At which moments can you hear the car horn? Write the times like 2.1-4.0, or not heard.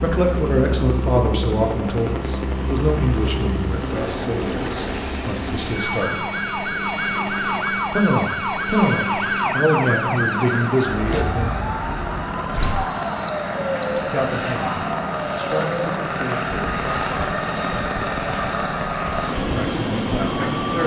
not heard.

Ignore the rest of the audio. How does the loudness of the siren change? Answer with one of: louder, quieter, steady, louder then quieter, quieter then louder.
quieter.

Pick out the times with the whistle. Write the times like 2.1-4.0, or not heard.
12.6-14.2.